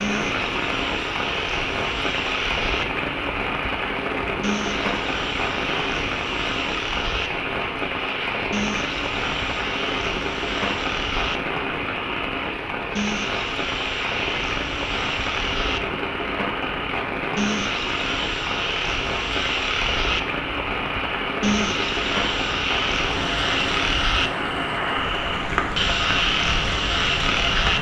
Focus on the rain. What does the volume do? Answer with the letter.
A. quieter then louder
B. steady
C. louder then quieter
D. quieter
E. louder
B.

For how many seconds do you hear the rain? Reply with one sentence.
The rain can be heard for 28 seconds in total.